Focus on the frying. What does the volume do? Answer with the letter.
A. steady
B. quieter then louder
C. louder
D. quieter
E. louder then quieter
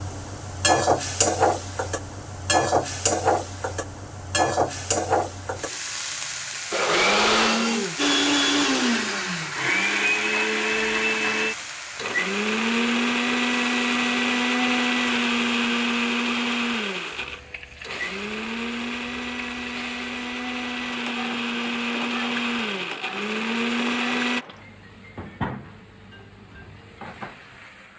D.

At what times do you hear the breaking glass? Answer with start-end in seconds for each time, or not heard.
not heard.